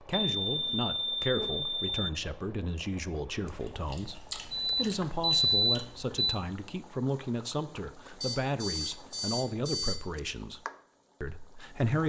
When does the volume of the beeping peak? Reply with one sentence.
The volume of the beeping peaks at 5 seconds.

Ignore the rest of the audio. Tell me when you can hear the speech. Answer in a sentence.
You can hear the speech from 0.1 to 10.6 s and from 11.2 to 12.0 s.